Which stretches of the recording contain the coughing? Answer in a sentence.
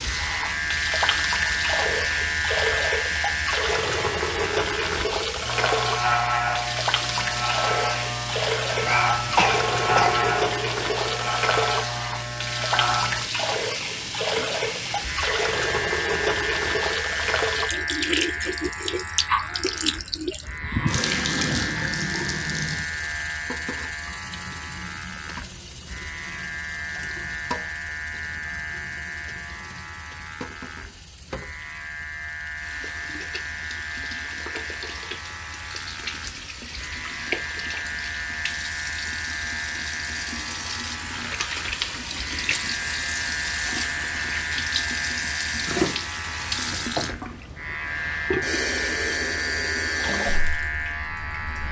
The coughing can be heard from 8.7 to 10.3 s.